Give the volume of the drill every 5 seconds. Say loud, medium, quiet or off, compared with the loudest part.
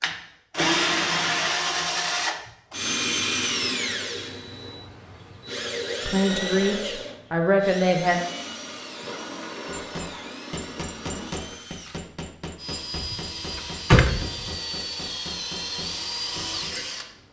loud, medium, medium, medium.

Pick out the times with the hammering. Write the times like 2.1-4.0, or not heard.
9.7-16.9.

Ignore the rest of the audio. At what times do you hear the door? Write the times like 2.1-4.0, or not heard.
12.9-14.3.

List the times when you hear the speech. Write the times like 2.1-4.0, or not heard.
6.0-8.2.